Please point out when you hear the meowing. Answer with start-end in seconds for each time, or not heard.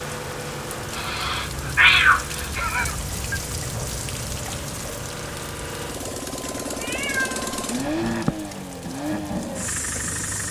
0.9-3.4, 6.5-8.6.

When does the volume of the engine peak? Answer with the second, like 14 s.
8 s.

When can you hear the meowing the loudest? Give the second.
2 s.